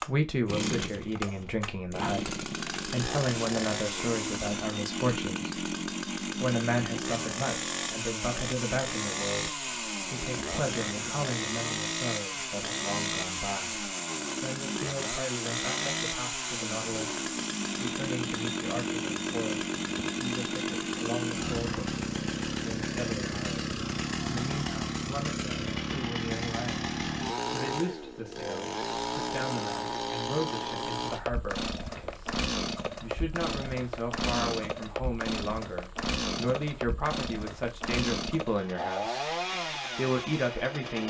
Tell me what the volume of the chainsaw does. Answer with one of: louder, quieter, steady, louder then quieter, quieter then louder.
steady.